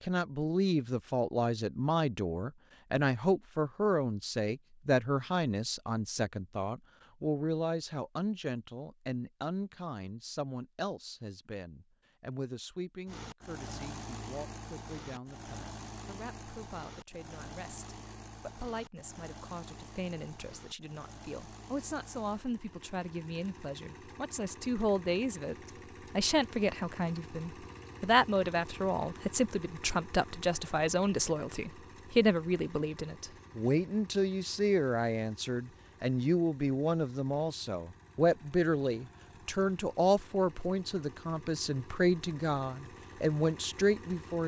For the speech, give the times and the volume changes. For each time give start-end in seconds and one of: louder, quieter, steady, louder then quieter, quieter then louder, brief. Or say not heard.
0.0-44.4 quieter then louder.